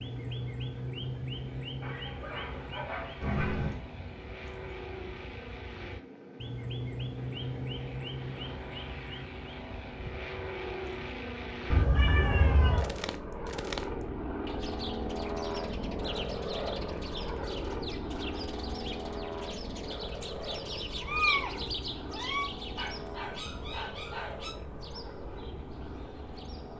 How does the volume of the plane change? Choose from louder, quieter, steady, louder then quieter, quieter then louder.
louder then quieter.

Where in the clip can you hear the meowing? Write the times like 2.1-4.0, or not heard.
3.2-3.8, 11.7-12.9, 21.0-22.5.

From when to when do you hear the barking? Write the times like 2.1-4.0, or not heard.
1.8-3.8, 22.8-24.6.